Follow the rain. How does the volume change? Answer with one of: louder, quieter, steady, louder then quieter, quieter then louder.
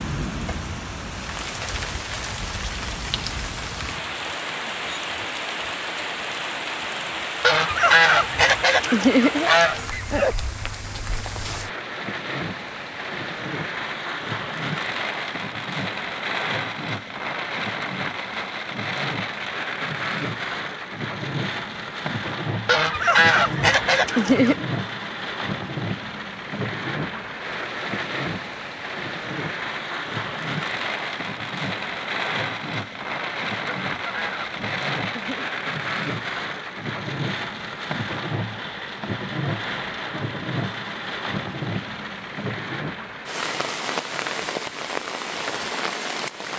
steady.